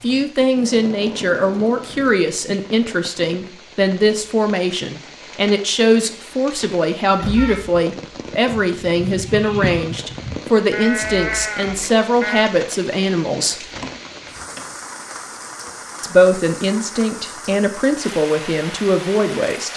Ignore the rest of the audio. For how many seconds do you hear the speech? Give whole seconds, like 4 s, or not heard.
17 s.